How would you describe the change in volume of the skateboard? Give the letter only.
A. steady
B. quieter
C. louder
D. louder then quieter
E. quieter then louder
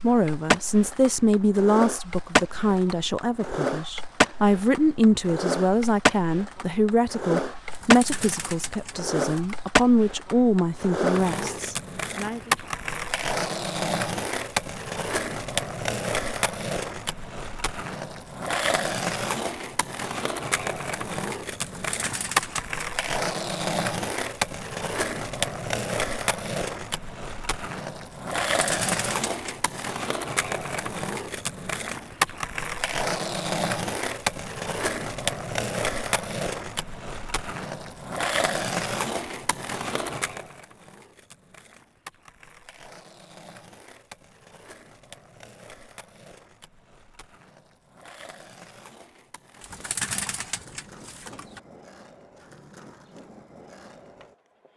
B.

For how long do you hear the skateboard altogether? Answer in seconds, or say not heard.
55 s.